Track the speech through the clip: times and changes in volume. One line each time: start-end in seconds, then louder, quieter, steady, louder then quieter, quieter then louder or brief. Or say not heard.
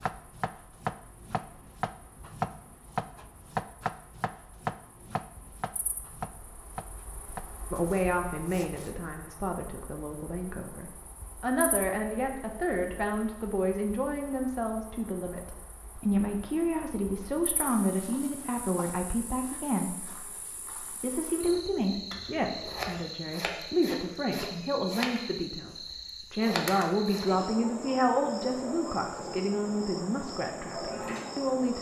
7.7-31.7 steady.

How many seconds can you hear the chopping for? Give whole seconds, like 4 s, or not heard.
9 s.